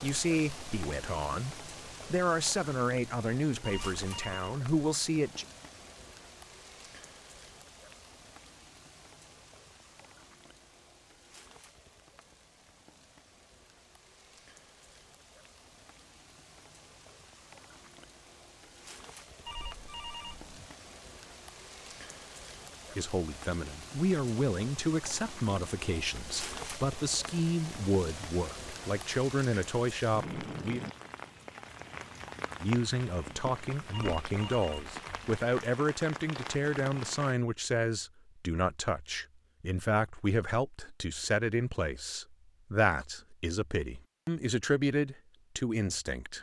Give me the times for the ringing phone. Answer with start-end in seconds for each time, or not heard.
3.6-4.5, 19.4-20.7, 33.9-35.3.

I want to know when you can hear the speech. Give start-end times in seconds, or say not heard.
0.0-5.5, 22.9-30.8, 32.6-46.3.